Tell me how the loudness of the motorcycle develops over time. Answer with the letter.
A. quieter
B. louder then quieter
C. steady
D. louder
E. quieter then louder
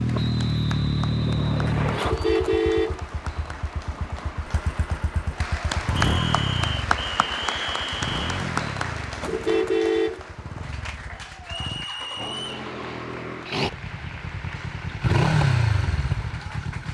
E.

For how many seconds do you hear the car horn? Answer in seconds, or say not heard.
3 s.